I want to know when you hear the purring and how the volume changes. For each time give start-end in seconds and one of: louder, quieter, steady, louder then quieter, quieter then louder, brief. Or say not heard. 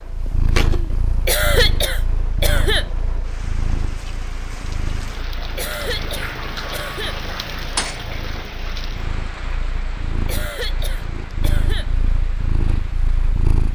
0.0-13.7 quieter then louder.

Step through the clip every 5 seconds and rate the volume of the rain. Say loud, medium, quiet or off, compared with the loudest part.
medium, loud, medium.